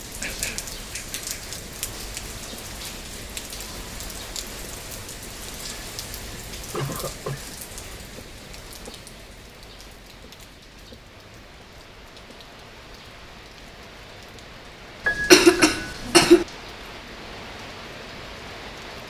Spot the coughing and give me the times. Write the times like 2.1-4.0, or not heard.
0.2-1.6, 6.7-7.4, 15.1-16.4.